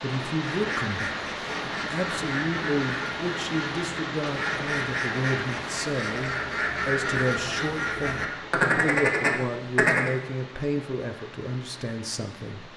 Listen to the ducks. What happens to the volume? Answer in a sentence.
The loudness of the ducks goes up.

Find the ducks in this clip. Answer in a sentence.
You can hear the ducks from 0.4 to 10.1 s.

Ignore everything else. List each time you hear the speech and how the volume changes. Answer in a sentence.
The speech can be heard from 0.0 to 12.7 s, at a steady volume.